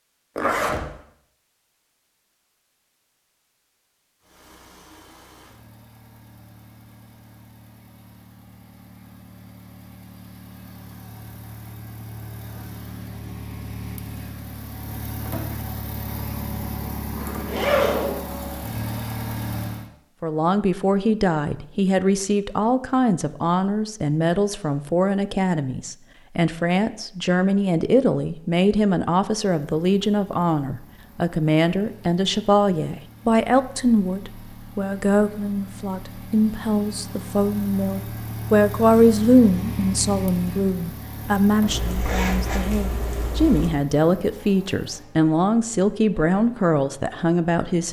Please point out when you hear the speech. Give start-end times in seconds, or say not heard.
20.2-47.8.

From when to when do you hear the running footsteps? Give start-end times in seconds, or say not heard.
not heard.